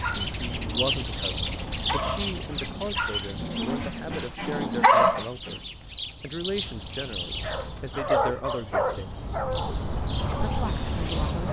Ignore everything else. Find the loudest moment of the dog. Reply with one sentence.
The loudest moment of the dog is at 5 seconds.